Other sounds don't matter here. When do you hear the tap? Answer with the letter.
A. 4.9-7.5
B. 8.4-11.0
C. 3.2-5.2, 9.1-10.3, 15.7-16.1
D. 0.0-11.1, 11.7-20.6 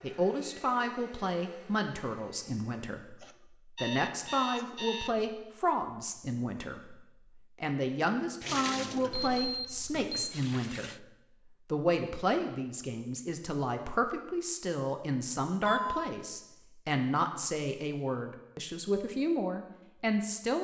B.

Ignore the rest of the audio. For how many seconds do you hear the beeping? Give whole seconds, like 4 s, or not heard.
4 s.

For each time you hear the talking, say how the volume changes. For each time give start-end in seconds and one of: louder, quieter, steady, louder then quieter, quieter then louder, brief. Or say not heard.
0.0-11.1 steady
11.7-20.6 steady.